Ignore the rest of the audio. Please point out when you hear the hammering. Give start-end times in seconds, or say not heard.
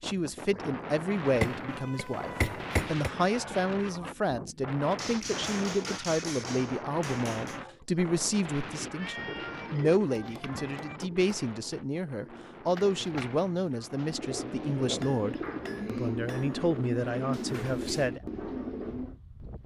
1.4-3.1, 5.0-7.6, 10.2-11.4, 14.8-16.6.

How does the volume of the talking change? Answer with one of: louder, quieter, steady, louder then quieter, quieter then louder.
steady.